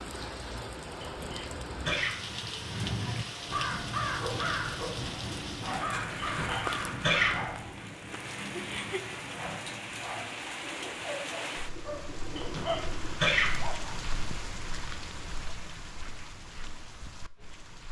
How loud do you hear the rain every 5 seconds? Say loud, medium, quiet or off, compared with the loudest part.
loud, loud, loud, medium.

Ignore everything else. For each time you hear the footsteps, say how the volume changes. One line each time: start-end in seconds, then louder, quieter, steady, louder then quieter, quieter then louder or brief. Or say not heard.
not heard.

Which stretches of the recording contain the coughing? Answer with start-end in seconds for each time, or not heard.
1.0-2.2, 6.2-7.5, 12.3-13.7.